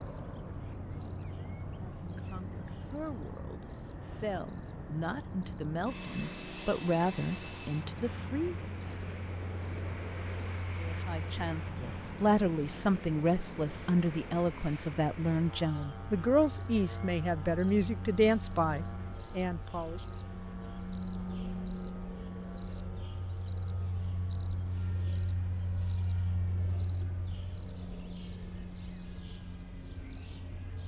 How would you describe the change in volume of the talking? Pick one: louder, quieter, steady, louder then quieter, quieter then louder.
louder.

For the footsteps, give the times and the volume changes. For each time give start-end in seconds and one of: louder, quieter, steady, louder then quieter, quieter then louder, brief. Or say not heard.
not heard.